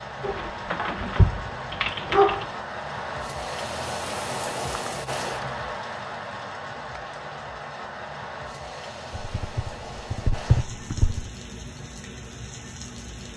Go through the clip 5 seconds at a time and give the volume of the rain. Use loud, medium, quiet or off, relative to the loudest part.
loud, loud, medium.